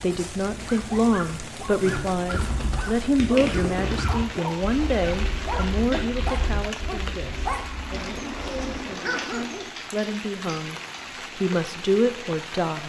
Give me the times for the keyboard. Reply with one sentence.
The keyboard can be heard from 1.8 to 11.0 s.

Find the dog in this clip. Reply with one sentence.
You can hear the dog from 0.5 to 9.7 s.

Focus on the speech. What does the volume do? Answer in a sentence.
The loudness of the speech goes down, then up.